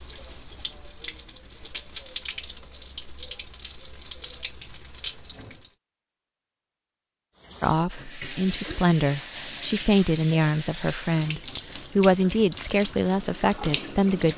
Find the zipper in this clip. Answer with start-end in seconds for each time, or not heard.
not heard.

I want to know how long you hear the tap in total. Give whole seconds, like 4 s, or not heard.
13 s.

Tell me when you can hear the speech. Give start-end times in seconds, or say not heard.
7.6-14.3.